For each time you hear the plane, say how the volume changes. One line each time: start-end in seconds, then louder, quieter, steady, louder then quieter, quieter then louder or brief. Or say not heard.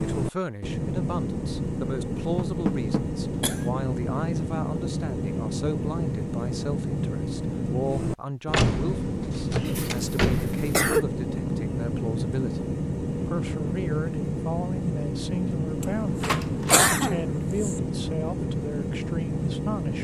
0.0-19.9 steady.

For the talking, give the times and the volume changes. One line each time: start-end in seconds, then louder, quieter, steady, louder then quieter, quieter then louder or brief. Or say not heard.
0.0-19.9 steady.